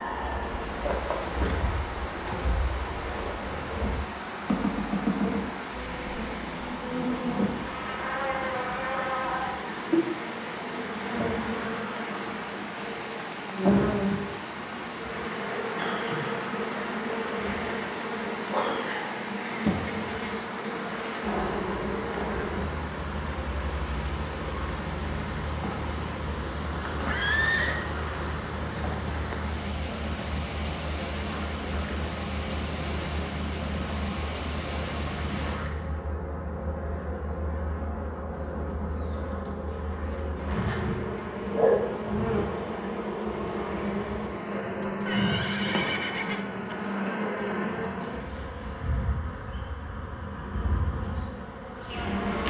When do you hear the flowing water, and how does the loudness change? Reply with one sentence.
You can hear the flowing water from 0.0 to 35.8 s, at a steady volume.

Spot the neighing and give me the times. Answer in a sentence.
You can hear the neighing from 1.4 to 2.5 s, from 27.1 to 27.9 s and from 44.8 to 46.8 s.